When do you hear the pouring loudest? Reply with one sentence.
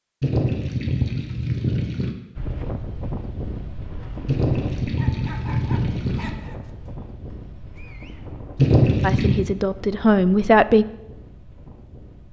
The volume of the pouring peaks at 9 seconds.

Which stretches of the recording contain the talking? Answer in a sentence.
The talking can be heard from 9.0 to 10.8 s.